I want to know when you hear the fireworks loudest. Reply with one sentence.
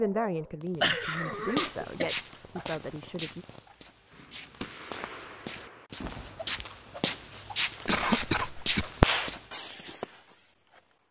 The loudest moment of the fireworks is at 9 seconds.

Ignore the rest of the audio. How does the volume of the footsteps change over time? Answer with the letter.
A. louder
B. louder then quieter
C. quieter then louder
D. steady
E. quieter
C.